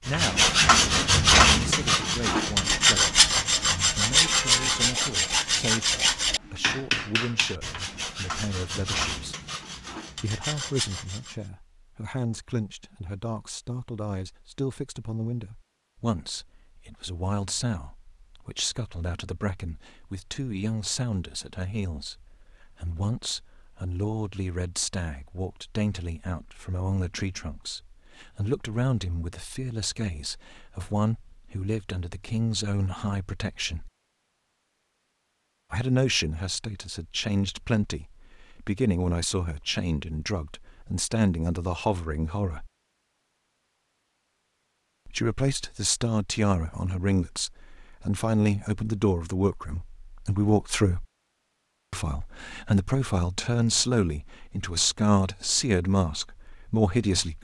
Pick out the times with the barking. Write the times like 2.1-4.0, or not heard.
not heard.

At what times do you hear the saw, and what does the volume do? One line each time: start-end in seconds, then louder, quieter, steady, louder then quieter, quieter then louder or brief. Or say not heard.
0.1-11.3 quieter.